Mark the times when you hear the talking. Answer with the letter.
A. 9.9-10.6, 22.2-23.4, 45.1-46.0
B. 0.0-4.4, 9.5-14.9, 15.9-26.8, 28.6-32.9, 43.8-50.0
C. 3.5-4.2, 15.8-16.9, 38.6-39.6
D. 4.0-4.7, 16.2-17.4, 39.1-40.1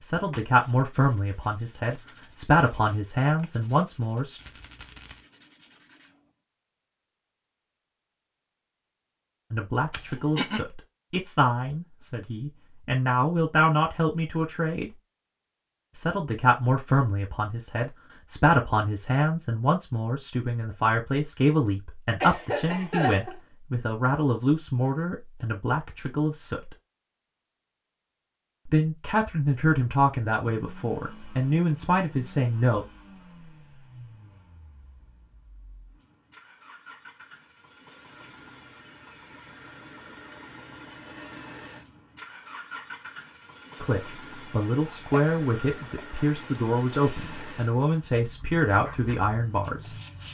B.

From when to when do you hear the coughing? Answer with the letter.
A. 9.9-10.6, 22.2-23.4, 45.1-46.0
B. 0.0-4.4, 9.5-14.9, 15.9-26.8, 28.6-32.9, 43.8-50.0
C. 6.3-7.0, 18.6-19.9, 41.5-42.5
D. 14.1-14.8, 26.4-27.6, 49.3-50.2
A.